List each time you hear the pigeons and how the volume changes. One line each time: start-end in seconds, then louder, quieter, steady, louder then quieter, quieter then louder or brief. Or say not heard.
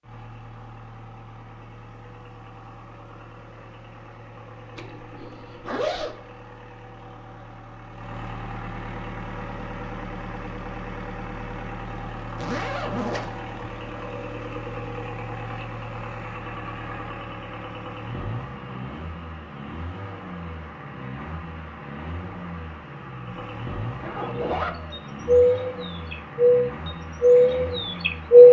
24.2-28.4 louder.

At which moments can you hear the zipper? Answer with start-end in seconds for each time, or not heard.
4.8-6.2, 12.3-13.3, 24.0-24.8.